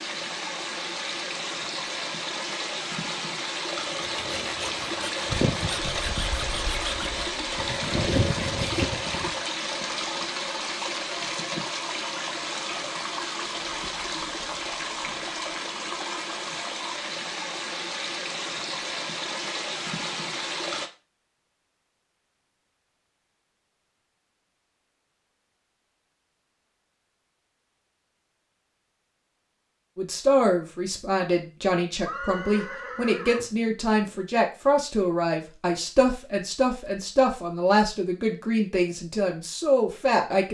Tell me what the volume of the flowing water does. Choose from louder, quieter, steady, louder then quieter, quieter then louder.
steady.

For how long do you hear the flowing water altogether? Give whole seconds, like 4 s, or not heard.
21 s.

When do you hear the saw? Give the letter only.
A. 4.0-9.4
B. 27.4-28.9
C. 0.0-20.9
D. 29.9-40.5
A.